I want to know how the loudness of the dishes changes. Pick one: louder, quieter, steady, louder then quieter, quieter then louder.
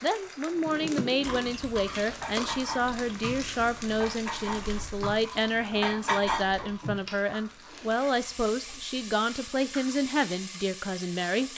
louder.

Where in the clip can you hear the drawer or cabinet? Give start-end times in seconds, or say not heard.
0.6-1.6.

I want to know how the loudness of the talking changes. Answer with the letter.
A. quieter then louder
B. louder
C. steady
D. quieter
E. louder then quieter
C.